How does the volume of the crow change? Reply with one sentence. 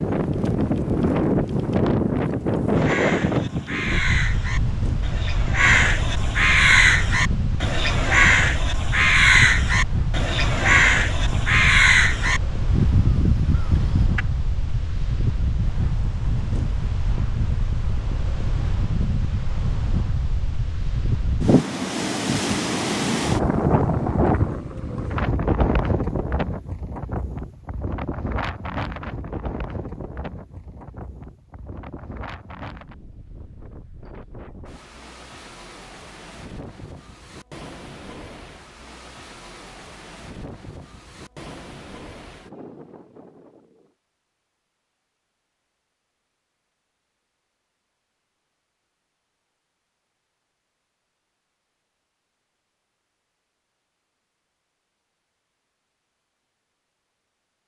The loudness of the crow goes up.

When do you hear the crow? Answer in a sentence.
You can hear the crow from 2.8 to 14.2 s.